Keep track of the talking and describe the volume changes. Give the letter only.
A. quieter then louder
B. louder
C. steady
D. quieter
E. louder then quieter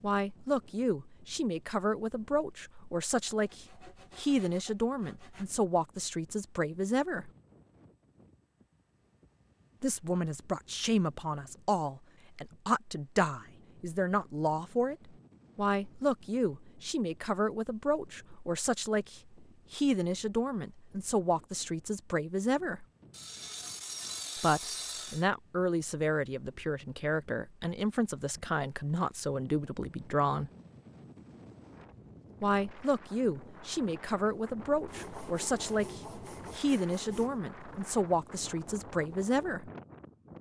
C.